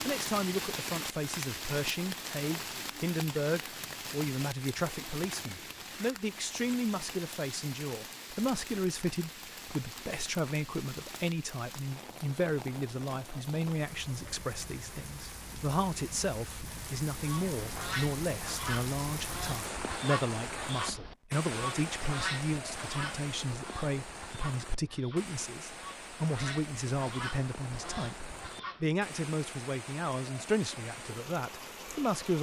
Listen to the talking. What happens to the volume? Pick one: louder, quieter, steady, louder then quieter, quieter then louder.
steady.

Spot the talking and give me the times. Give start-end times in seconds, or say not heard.
0.1-32.3.